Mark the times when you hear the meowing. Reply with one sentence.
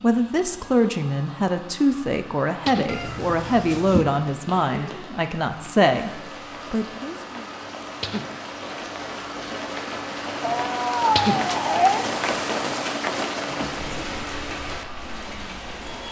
You can hear the meowing from 2.9 to 4.0 s and from 10.4 to 12.1 s.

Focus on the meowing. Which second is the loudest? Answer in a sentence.
The volume of the meowing peaks at 12 seconds.